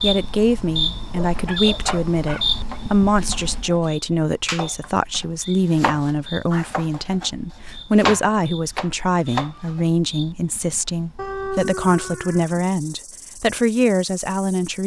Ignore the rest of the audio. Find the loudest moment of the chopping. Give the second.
8 s.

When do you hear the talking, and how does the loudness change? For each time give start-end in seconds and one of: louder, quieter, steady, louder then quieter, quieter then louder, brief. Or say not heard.
0.0-14.8 steady.